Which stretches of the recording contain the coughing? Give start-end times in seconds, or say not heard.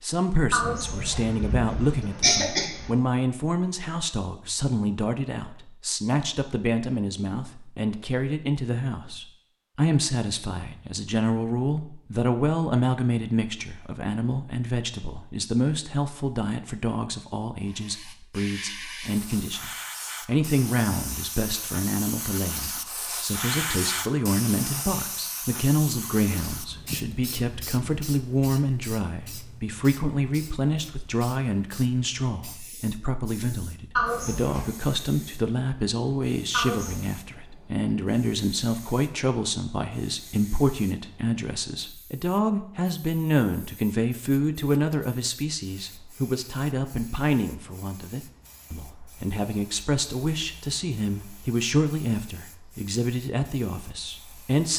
0.5-2.9, 34.0-34.7, 36.5-37.1.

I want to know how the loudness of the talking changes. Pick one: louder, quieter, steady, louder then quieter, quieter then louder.
steady.